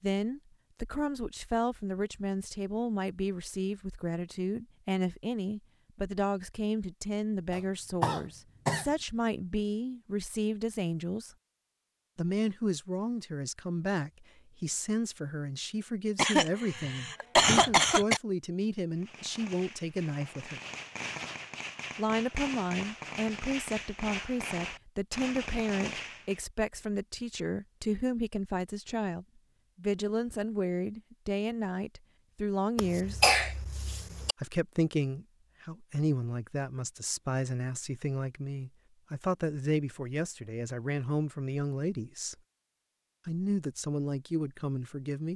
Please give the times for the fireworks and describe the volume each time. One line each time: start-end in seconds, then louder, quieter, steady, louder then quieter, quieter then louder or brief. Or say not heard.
18.9-26.4 louder.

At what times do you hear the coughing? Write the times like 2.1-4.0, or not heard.
7.5-8.8, 16.1-18.2, 32.8-34.4.